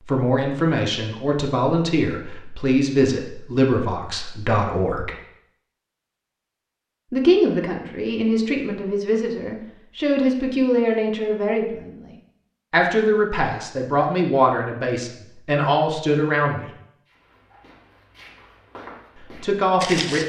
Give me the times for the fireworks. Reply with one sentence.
The fireworks can't be heard in this clip.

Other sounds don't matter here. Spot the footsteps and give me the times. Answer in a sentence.
The footsteps can be heard from 17.1 to 20.2 s.